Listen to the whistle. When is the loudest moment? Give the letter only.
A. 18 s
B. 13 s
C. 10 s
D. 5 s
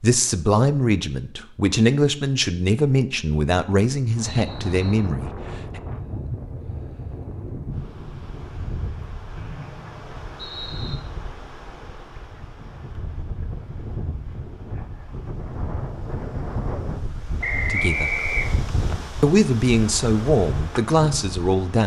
A.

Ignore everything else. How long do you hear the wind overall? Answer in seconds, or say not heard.
18 s.